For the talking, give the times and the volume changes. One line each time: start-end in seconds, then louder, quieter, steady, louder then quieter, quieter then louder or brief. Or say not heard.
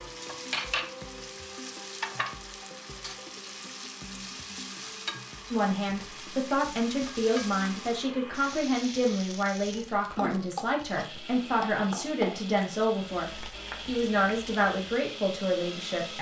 5.5-16.1 steady.